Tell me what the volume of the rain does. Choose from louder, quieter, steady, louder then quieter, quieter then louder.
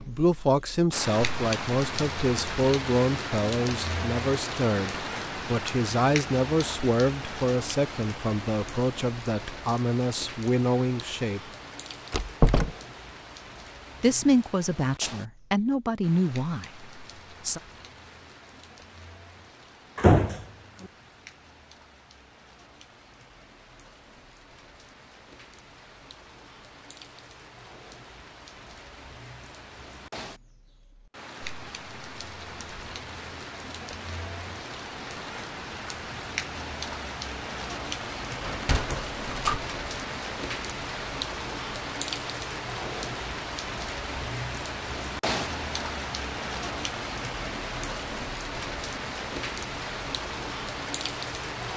quieter then louder.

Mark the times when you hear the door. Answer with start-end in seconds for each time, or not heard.
12.1-12.7, 19.9-20.4, 38.4-39.6.